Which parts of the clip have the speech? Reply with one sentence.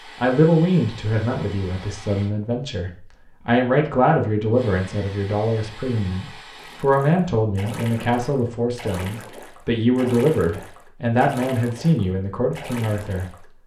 The speech can be heard from 0.2 to 13.4 s.